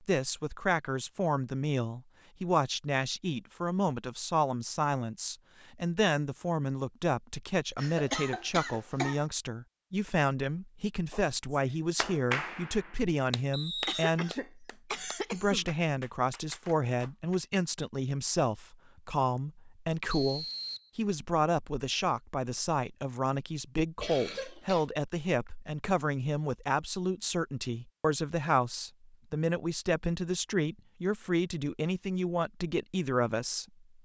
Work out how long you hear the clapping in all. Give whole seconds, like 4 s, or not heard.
6 s.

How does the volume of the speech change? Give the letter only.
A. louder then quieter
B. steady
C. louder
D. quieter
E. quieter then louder
B.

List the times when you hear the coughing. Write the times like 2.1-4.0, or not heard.
7.8-9.2, 13.8-15.7, 24.0-24.9.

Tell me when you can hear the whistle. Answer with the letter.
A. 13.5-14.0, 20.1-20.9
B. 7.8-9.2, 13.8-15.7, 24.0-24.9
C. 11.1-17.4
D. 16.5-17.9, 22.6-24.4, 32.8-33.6
A.